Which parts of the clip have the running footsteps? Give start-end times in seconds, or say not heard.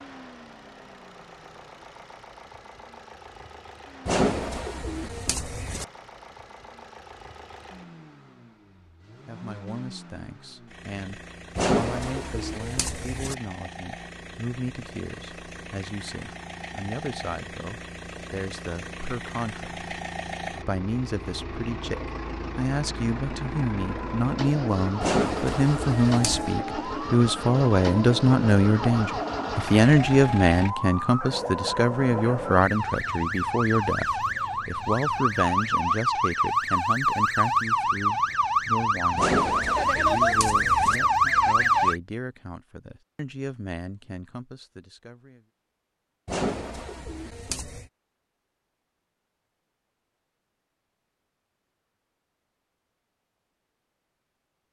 not heard.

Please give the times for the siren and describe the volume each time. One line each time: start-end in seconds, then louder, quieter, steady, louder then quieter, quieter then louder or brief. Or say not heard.
23.7-42.0 louder.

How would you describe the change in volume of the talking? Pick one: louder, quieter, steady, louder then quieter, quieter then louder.
louder then quieter.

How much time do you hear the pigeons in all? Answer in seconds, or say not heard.
9 s.